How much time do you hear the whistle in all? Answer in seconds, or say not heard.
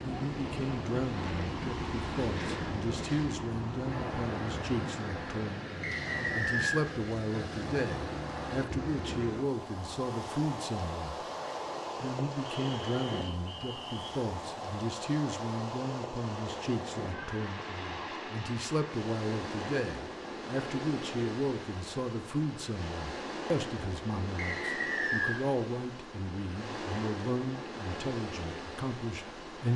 4 s.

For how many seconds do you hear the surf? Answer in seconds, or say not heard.
30 s.